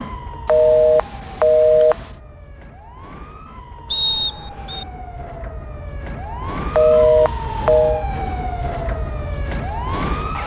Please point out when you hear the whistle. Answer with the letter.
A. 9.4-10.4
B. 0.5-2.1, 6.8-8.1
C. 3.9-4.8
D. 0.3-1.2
C.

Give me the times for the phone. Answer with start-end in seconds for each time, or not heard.
0.5-2.1, 6.8-8.1.